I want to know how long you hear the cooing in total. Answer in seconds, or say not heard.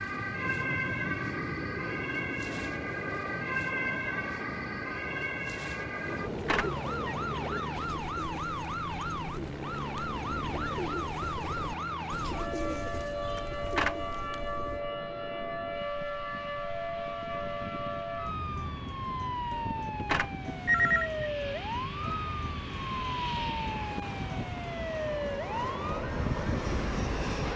9 s.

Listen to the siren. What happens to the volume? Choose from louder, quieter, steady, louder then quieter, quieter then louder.
steady.